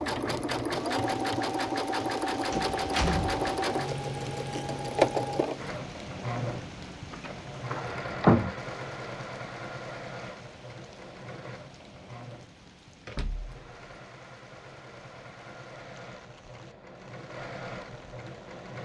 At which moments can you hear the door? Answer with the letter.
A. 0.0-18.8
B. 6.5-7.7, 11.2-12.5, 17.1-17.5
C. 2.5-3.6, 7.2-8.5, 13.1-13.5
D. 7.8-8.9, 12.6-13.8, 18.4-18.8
C.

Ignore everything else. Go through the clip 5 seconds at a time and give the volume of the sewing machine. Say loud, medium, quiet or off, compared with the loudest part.
loud, loud, quiet, quiet.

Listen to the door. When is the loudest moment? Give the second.
8 s.